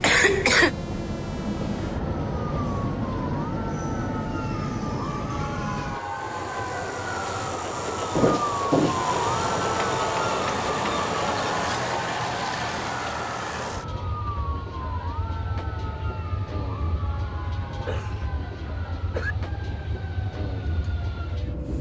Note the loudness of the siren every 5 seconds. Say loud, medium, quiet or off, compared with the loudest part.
medium, loud, loud, medium, quiet.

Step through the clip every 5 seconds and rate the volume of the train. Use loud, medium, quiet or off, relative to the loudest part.
loud, loud, loud, medium, medium.